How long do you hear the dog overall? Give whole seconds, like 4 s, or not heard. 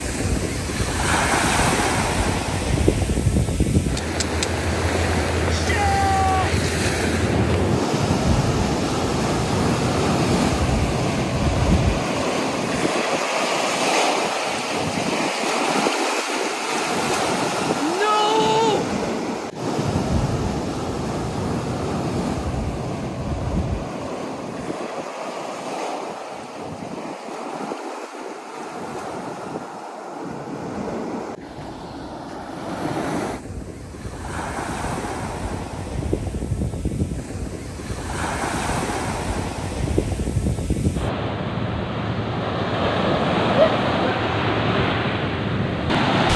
not heard.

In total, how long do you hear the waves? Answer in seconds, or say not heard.
46 s.